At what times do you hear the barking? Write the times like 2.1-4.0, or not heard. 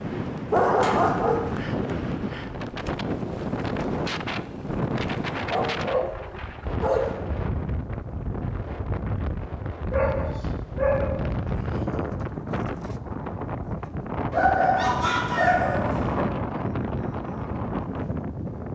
0.5-1.5, 5.5-7.1, 9.9-11.8, 14.3-16.2.